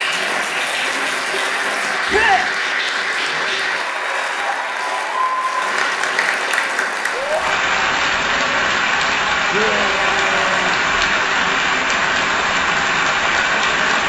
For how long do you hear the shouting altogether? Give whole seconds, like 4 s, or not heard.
2 s.